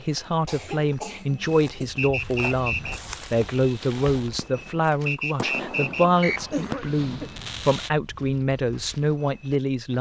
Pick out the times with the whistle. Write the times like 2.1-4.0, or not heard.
1.9-3.0, 5.0-6.4.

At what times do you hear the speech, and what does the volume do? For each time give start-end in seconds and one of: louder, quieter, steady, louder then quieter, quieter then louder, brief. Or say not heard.
0.0-9.9 steady.